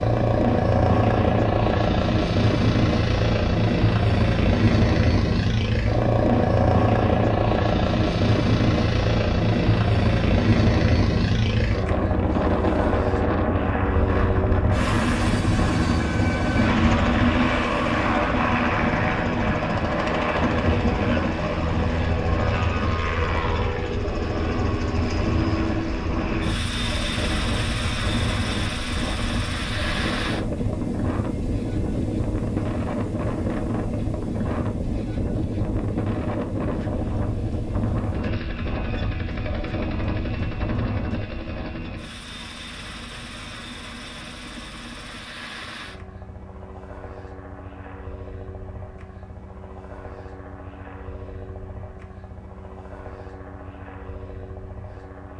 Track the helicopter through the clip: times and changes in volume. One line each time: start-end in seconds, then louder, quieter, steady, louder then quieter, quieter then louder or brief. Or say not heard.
0.0-55.3 quieter.